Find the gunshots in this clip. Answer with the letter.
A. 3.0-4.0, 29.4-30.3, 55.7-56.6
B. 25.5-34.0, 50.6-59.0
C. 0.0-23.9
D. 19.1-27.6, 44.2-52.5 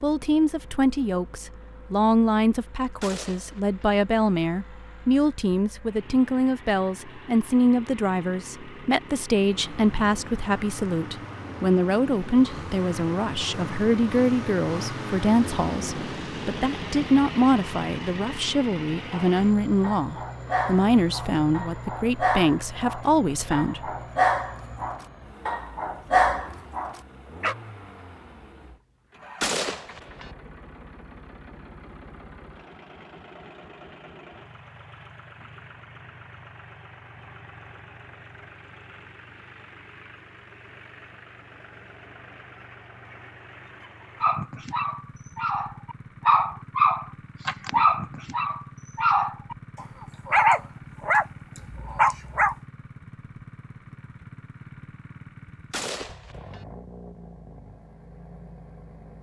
A.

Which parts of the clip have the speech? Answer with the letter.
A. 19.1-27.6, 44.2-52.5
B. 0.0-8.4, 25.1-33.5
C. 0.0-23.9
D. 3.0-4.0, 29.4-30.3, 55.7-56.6
C.